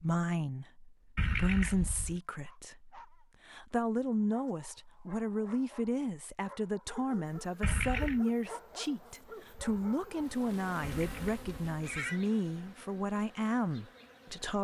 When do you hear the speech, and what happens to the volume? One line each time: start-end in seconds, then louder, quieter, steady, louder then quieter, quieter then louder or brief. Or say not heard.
0.0-14.6 steady.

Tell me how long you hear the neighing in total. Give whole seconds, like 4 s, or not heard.
3 s.